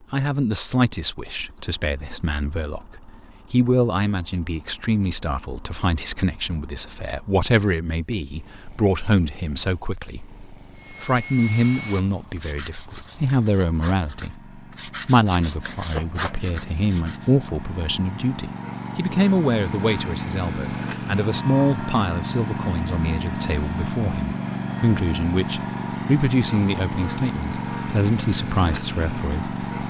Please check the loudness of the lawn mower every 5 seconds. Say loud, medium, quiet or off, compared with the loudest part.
quiet, quiet, quiet, medium, loud, loud.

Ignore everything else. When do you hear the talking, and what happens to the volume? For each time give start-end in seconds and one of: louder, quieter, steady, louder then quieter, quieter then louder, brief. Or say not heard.
0.1-29.6 steady.